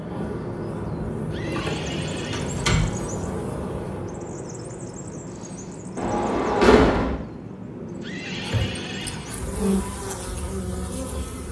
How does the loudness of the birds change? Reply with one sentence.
The volume of the birds goes down.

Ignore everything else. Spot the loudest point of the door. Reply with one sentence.
The volume of the door peaks at 7 seconds.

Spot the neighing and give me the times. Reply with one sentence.
You can hear the neighing from 1.3 to 2.8 s and from 8.0 to 9.4 s.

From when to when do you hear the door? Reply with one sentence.
The door can be heard from 2.3 to 3.1 s and from 6.0 to 7.2 s.